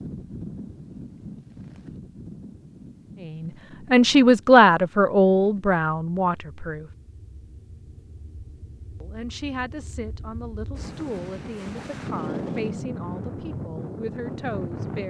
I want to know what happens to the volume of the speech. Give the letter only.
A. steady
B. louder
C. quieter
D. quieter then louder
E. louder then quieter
C.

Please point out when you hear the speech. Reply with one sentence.
The speech can be heard from 3.2 to 6.9 s and from 9.0 to 15.0 s.